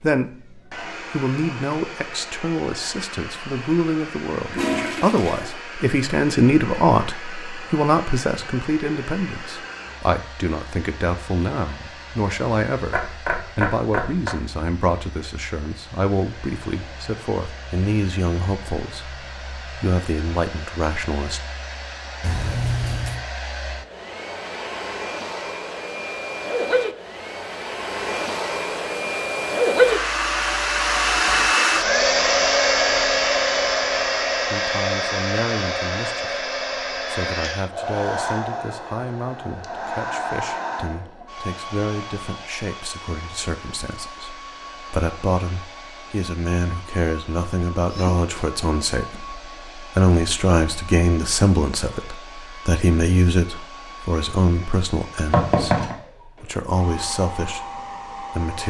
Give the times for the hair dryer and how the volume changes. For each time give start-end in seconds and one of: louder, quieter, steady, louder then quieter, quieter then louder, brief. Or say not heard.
0.0-58.6 louder then quieter.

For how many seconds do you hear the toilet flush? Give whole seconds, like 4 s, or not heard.
3 s.